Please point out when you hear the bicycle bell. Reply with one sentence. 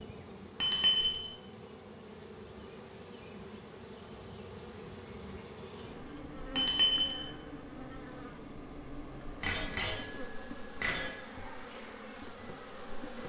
You can hear the bicycle bell from 0.6 to 1.1 s, from 6.5 to 7.1 s and from 9.4 to 11.2 s.